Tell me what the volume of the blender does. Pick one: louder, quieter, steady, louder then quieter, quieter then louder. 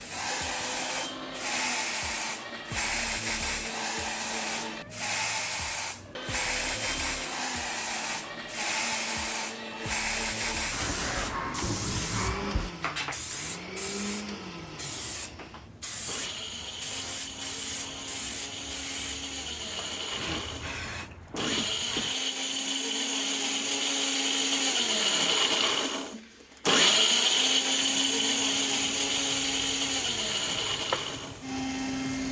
louder.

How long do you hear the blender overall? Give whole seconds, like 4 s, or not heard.
32 s.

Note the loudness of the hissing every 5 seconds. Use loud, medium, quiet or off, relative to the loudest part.
loud, loud, loud, medium, medium, quiet, medium.